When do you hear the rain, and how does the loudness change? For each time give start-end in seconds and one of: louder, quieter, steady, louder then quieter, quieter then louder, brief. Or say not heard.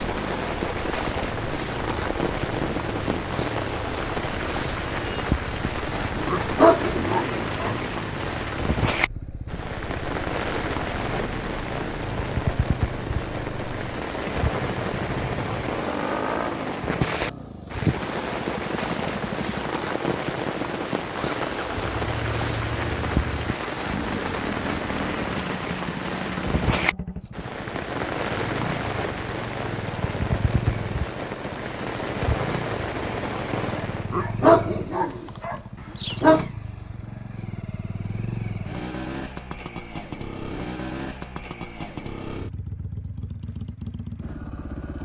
0.0-34.2 steady.